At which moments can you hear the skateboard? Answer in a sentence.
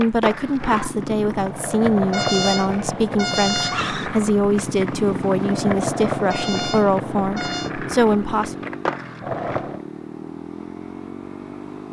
You can hear the skateboard from 0.0 to 9.8 s.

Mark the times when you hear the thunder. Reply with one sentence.
You can't hear the thunder here.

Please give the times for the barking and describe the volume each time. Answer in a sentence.
You can't hear the barking here.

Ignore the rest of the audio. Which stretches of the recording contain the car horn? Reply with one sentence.
You can hear the car horn from 2.1 to 3.9 s and from 6.3 to 7.7 s.